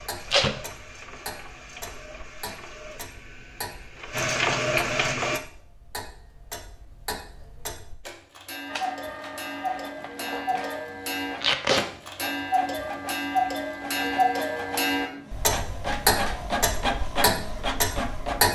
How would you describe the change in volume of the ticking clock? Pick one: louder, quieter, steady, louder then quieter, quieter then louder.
louder.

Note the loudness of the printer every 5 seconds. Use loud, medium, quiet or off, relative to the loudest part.
loud, loud, medium, loud.